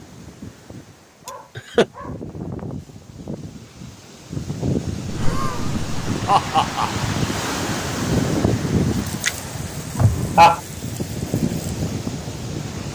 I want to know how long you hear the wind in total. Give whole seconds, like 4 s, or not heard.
13 s.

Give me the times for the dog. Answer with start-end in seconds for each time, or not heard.
1.2-2.2.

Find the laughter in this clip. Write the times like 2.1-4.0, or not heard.
1.2-1.9, 5.1-6.9, 9.9-10.6.